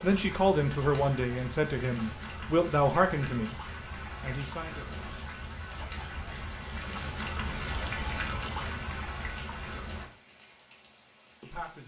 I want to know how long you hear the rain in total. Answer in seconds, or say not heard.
12 s.